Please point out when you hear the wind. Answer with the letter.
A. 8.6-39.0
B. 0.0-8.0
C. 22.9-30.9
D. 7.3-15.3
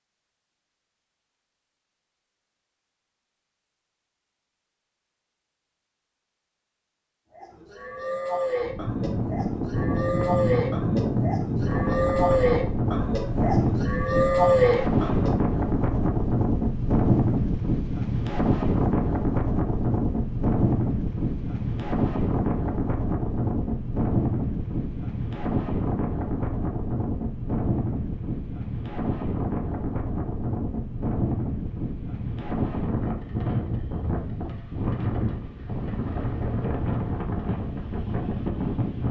A.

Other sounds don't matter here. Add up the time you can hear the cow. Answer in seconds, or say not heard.
8 s.